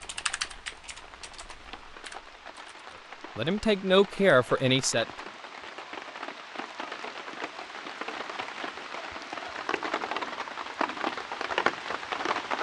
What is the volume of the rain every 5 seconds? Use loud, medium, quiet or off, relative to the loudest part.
quiet, medium, loud.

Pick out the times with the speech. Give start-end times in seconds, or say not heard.
3.4-5.0.